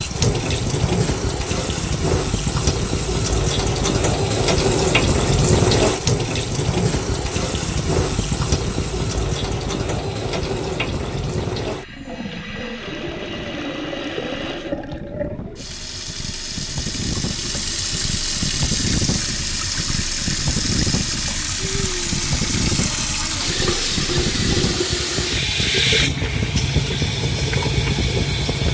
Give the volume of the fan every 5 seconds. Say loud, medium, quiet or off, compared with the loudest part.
loud, loud, medium, loud, loud, loud.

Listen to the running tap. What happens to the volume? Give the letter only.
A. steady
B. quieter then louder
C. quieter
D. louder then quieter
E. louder
B.